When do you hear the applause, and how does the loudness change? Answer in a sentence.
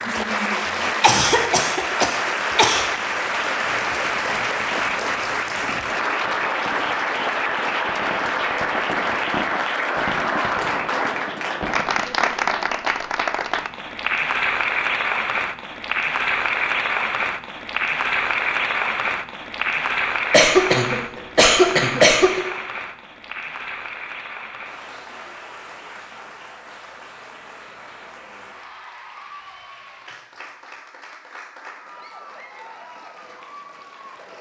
You can hear the applause from 0.0 to 34.3 s, getting quieter.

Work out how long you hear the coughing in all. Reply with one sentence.
You can hear the coughing for 4 seconds altogether.